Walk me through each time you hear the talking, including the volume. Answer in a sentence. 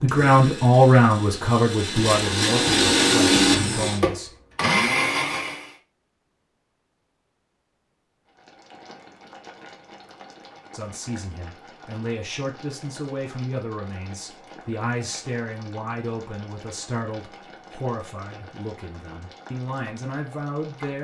You can hear the talking from 0.0 to 4.3 s, getting quieter; and from 10.7 to 20.9 s, at a steady volume.